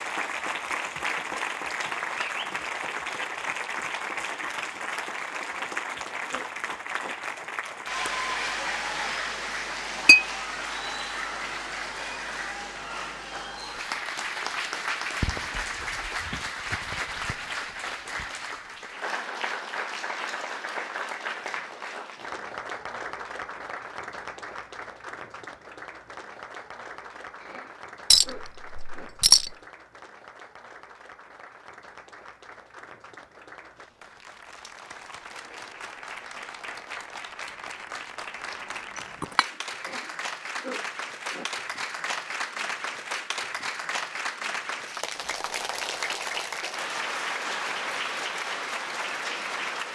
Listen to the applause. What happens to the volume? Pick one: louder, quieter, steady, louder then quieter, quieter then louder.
quieter then louder.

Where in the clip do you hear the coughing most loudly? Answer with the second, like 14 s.
41 s.